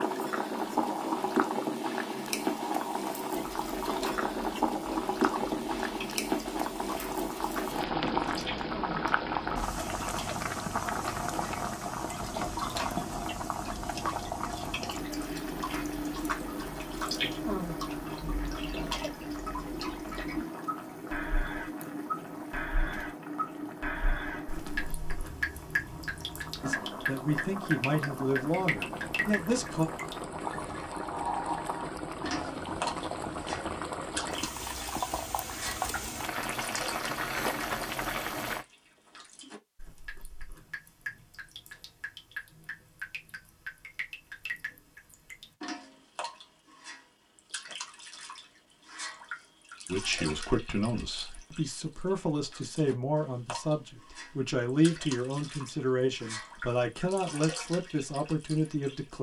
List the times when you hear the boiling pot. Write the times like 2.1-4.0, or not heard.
0.0-38.6.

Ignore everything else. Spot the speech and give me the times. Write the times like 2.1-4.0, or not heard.
26.6-29.9, 49.9-59.1.